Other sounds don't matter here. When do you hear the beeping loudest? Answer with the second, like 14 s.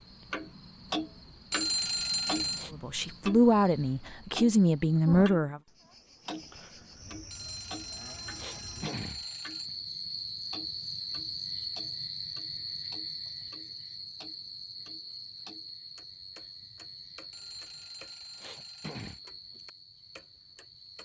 2 s.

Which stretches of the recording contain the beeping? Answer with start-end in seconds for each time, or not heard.
1.5-2.7, 7.3-9.7, 17.3-19.2.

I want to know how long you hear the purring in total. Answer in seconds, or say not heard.
not heard.